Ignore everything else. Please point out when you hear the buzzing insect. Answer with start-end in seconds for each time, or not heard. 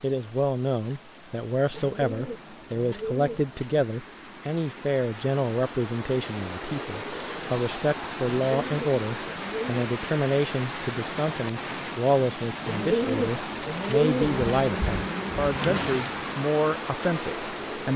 14.2-17.9.